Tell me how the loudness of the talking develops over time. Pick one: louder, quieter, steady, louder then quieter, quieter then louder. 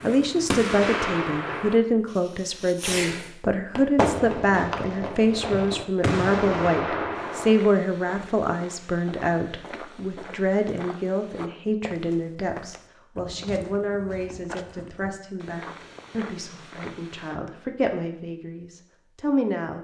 quieter.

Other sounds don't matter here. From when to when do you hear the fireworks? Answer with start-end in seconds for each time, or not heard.
0.0-7.5.